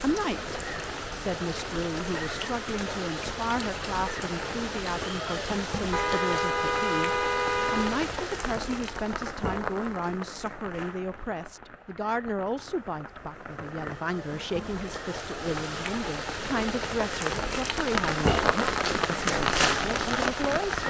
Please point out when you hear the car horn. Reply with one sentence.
You can hear the car horn from 5.9 to 8.0 s.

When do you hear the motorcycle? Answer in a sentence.
The motorcycle can't be heard in this clip.